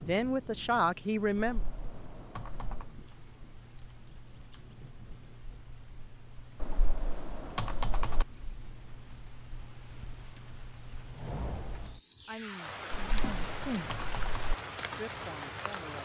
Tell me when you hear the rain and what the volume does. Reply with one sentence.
You can hear the rain from 0.0 to 16.0 s, getting louder.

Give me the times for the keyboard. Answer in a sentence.
The keyboard can be heard from 1.4 to 3.0 s, from 6.6 to 8.2 s and from 12.9 to 14.6 s.